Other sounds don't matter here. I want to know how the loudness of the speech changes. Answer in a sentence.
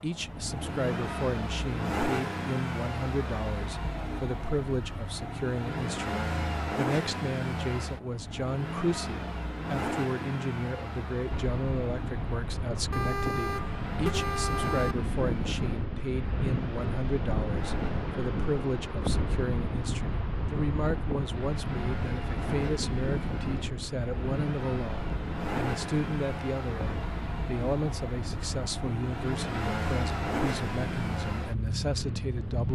The loudness of the speech stays about the same.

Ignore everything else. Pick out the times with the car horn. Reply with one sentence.
The car horn can be heard from 12.9 to 14.9 s.